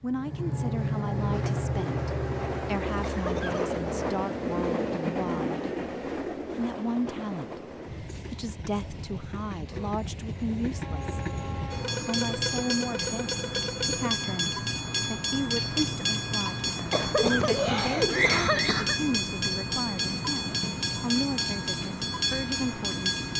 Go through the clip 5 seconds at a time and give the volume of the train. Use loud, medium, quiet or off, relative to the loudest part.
loud, medium, loud, loud, loud.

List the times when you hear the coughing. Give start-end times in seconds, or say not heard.
2.9-3.8, 16.8-19.0.